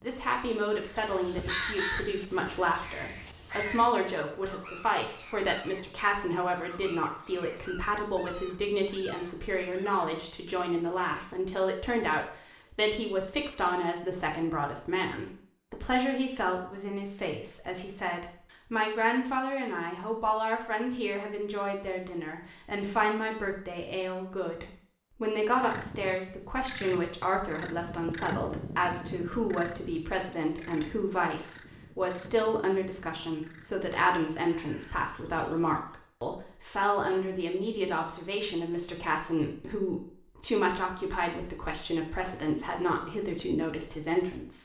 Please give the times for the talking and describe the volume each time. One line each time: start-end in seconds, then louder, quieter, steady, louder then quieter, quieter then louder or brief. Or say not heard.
0.0-44.5 steady.